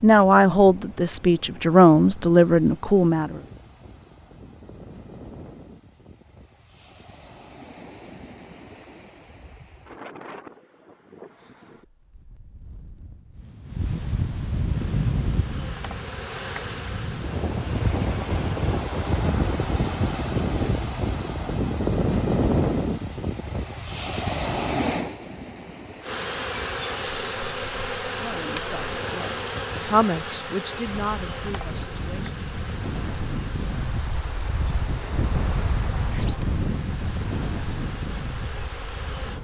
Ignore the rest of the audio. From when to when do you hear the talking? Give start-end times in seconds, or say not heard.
0.0-3.4, 28.1-32.4.